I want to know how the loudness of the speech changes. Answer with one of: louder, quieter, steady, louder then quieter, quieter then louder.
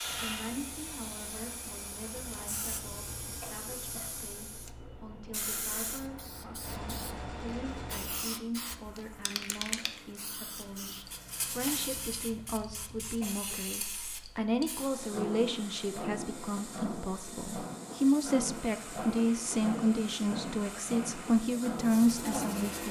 louder.